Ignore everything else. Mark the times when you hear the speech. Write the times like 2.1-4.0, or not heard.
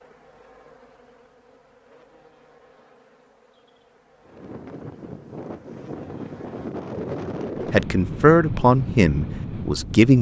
7.7-10.1.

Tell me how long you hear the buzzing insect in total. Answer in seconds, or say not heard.
7 s.